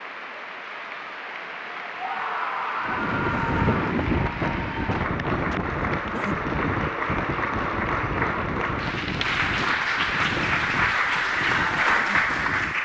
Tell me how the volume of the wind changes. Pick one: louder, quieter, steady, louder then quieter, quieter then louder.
quieter.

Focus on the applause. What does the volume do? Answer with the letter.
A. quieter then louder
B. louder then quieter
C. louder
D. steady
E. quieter
C.